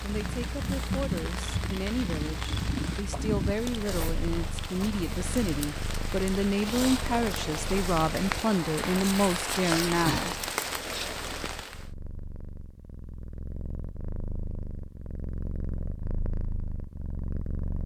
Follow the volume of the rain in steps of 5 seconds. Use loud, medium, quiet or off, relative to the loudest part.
medium, loud, loud, off.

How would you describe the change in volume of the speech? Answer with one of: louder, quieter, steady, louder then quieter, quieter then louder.
louder.